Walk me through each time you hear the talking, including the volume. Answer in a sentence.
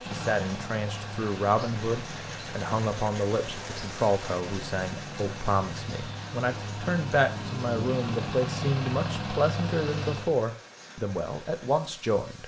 You can hear the talking from 0.0 to 12.4 s, at a steady volume.